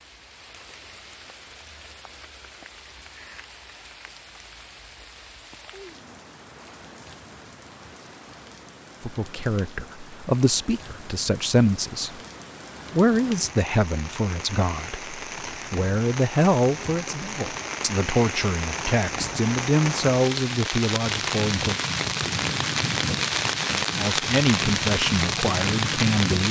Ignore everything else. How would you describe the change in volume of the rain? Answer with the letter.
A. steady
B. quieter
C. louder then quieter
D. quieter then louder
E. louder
E.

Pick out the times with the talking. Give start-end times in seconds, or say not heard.
9.0-12.2, 12.9-21.8, 23.9-26.4.